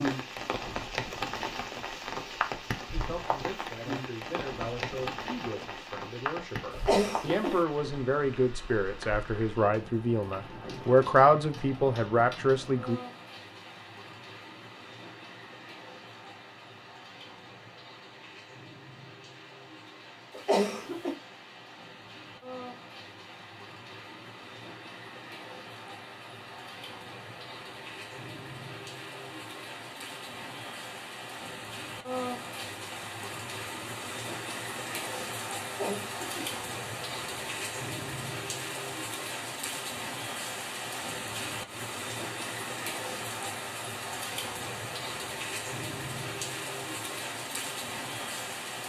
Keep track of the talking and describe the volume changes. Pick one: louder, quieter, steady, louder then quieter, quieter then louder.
louder.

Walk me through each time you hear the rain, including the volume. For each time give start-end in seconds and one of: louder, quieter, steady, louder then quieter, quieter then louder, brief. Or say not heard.
0.0-48.8 quieter then louder.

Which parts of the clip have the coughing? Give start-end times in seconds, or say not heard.
6.7-7.6, 20.4-21.1, 35.6-36.5.